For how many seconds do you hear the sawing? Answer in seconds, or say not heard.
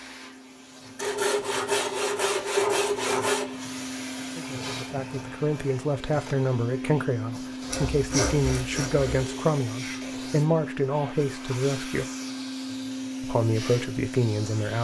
4 s.